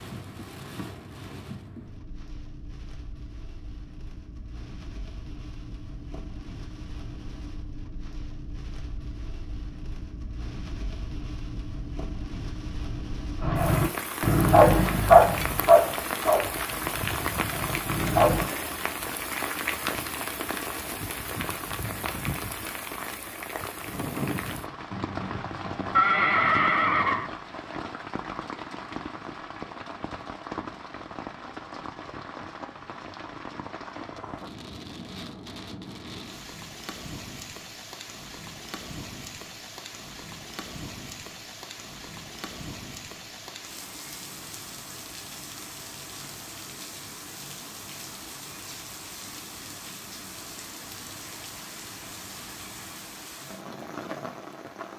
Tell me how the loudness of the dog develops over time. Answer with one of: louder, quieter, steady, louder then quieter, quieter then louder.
quieter.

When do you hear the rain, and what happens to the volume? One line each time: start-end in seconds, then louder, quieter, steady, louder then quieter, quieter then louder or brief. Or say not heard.
0.0-54.9 louder then quieter.